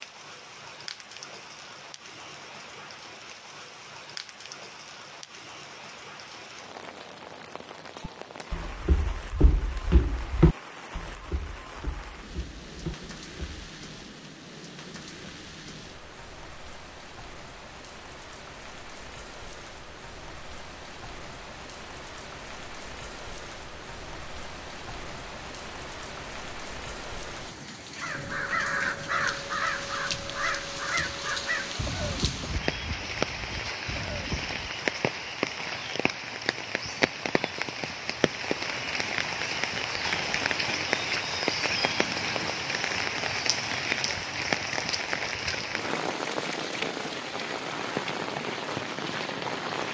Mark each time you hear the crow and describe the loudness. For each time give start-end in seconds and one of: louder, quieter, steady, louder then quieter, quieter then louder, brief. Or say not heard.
27.9-34.8 quieter.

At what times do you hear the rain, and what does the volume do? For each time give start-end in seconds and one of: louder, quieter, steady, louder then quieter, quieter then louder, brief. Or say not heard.
0.0-49.8 louder.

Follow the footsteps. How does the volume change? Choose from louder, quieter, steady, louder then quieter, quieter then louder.
louder then quieter.